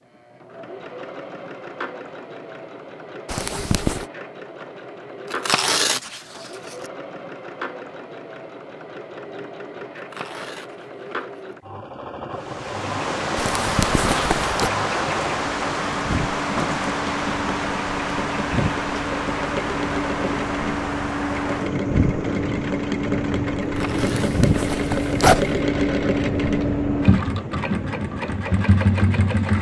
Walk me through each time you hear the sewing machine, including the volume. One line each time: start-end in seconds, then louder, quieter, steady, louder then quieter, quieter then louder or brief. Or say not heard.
0.0-29.5 louder.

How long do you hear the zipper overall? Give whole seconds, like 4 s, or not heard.
4 s.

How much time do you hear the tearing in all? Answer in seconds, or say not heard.
4 s.